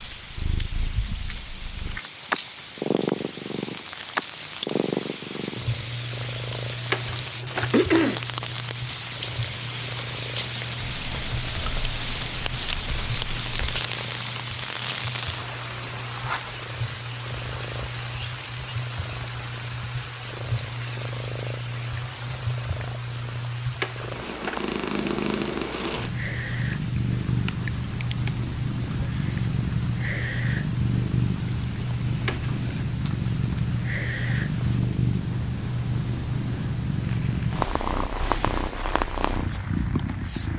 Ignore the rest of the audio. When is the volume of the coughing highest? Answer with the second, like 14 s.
8 s.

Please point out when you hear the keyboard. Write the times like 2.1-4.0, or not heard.
10.8-13.8, 27.4-29.4.